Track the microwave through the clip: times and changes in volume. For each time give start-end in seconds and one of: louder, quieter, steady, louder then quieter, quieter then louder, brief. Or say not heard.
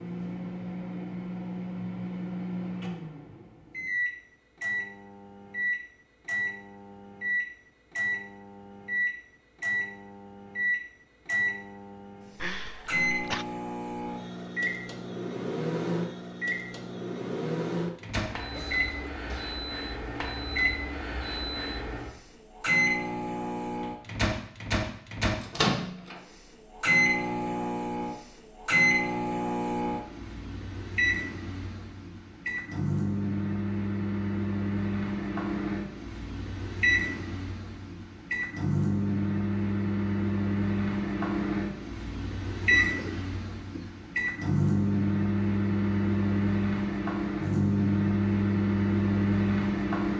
0.0-50.1 louder.